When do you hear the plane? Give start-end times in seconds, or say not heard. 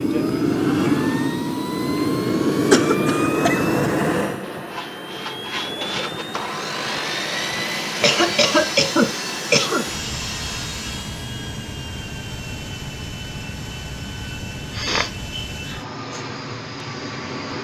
0.0-17.5.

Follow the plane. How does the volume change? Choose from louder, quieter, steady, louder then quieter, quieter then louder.
quieter.